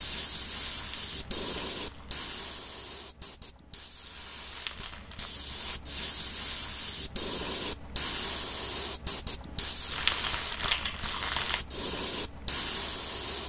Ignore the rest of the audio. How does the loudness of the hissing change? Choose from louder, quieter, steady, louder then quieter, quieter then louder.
quieter then louder.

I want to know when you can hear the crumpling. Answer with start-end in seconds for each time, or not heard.
1.0-2.1, 4.5-5.3, 9.9-11.6.